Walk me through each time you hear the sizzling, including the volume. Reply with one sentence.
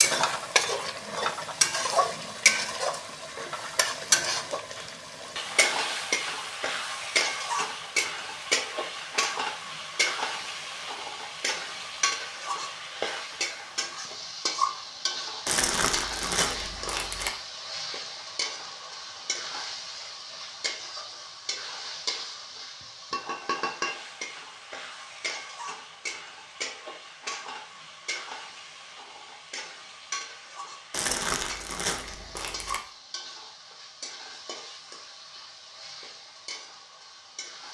The sizzling can be heard from 0.0 to 37.6 s, getting quieter.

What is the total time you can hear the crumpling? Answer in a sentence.
You can hear the crumpling for 4 seconds altogether.